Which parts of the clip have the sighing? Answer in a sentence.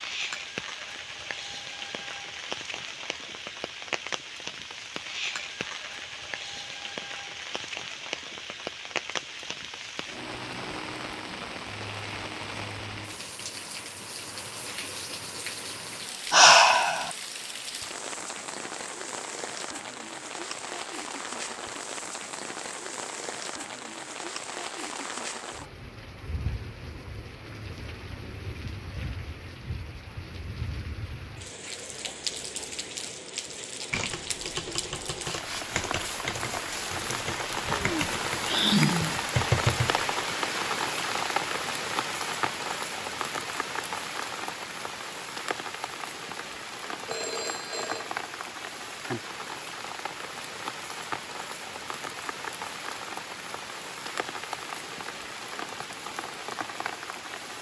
You can hear the sighing from 16.3 to 17.1 s and from 37.5 to 39.1 s.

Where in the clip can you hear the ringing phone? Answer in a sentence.
The ringing phone can be heard from 47.0 to 48.1 s.